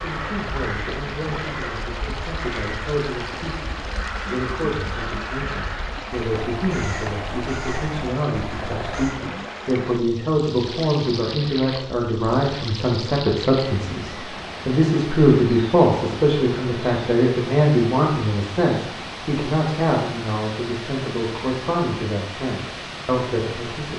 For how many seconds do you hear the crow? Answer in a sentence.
The crow can be heard for 9 seconds in total.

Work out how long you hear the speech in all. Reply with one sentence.
The speech can be heard for 24 seconds in total.